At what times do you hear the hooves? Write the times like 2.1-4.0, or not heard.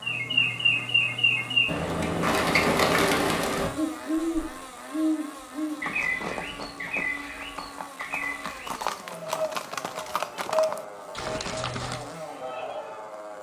5.8-12.1.